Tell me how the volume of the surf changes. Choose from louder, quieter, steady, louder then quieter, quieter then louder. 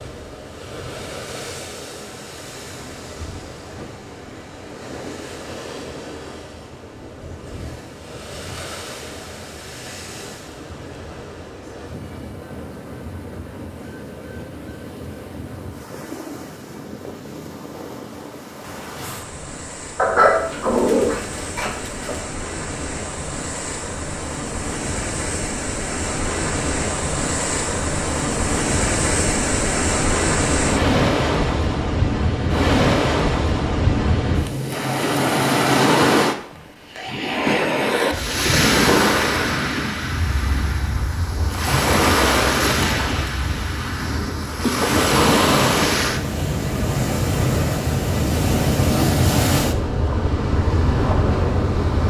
louder.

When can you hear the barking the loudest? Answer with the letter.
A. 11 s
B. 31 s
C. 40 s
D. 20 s
D.